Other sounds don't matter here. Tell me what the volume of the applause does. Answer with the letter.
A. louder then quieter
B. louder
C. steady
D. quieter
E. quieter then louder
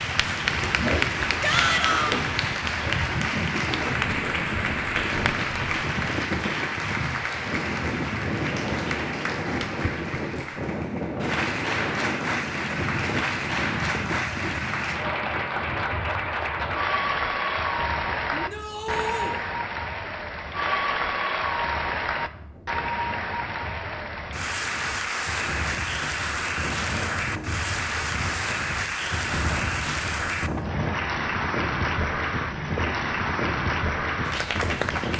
C.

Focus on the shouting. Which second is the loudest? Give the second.
2 s.